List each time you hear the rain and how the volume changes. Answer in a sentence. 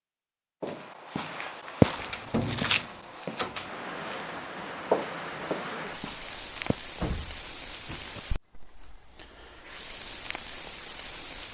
The rain can be heard from 3.5 to 11.4 s, getting quieter then louder.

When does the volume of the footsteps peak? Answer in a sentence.
The volume of the footsteps peaks at 2 seconds.